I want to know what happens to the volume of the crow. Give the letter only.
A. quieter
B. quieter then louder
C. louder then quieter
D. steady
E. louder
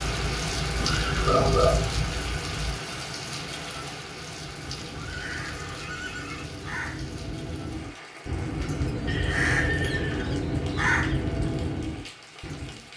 E.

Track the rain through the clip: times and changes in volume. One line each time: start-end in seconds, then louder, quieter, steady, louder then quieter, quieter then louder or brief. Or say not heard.
0.0-12.9 quieter.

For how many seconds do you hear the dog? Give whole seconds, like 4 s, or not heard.
3 s.